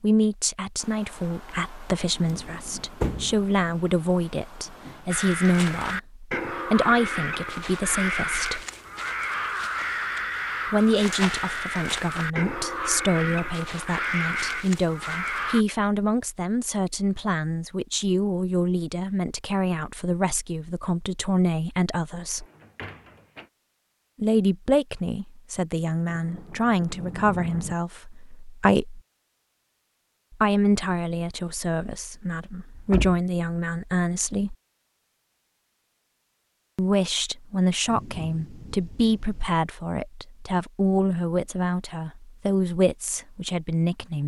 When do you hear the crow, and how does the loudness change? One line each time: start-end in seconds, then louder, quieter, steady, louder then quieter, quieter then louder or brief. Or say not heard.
5.1-15.7 steady.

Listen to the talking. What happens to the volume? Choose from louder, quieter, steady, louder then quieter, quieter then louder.
steady.